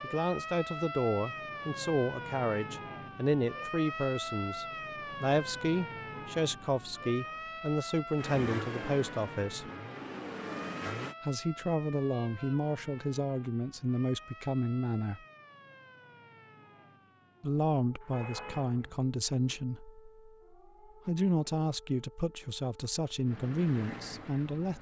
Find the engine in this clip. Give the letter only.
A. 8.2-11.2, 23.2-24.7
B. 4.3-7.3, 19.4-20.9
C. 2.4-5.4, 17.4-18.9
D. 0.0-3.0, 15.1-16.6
A.